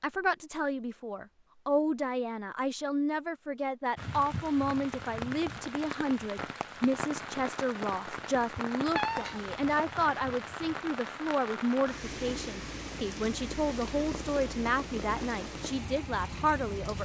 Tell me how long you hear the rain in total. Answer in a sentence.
You can hear the rain for 13 seconds altogether.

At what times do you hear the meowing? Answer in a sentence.
The meowing can be heard from 8.9 to 9.8 s.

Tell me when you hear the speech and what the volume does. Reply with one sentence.
You can hear the speech from 0.0 to 17.0 s, at a steady volume.